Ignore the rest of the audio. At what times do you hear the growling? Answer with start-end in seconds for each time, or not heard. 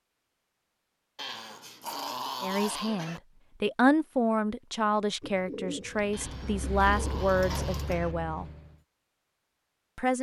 1.1-3.2, 6.1-8.2.